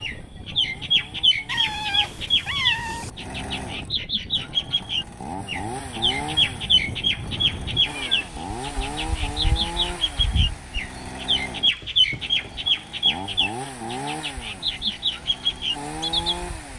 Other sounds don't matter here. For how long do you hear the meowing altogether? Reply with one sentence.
The meowing can be heard for 3 seconds in total.